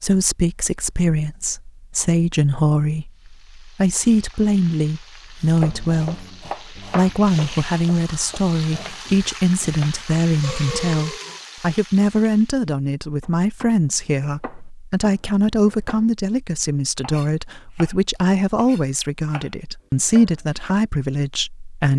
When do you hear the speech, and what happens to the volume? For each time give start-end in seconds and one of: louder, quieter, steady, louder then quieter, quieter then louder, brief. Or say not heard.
0.0-21.9 steady.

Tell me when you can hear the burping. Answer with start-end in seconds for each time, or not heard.
10.4-11.4.